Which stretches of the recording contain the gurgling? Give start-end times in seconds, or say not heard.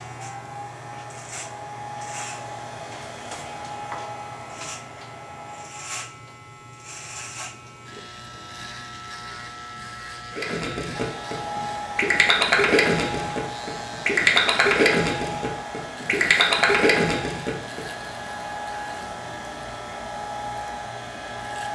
10.3-17.8.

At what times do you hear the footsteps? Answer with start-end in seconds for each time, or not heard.
not heard.